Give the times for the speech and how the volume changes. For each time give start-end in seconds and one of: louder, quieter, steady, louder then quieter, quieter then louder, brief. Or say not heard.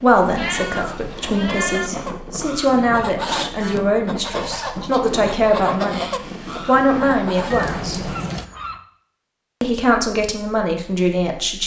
0.0-8.1 louder
9.6-11.6 brief.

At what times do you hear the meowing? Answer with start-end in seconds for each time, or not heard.
0.3-1.9, 7.5-8.4.